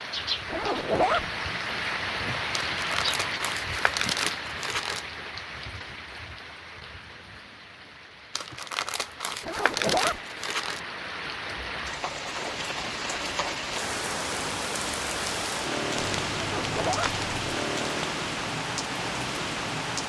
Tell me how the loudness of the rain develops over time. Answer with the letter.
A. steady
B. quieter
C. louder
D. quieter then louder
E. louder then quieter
D.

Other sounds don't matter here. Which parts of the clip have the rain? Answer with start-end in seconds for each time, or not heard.
0.0-20.0.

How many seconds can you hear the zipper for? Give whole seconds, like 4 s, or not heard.
2 s.